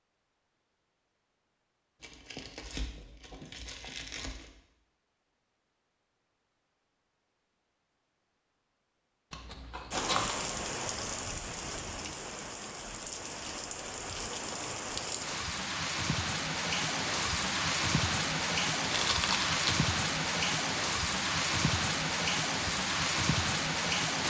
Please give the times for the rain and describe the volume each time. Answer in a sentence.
The rain can be heard from 9.9 to 24.2 s, getting louder.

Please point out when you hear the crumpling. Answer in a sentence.
You can hear the crumpling from 2.0 to 4.5 s, from 9.3 to 10.4 s and from 18.9 to 19.6 s.